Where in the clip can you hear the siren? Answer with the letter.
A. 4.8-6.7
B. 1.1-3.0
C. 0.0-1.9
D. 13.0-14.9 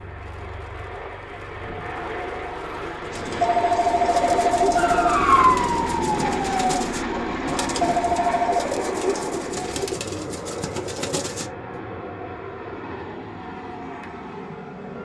A.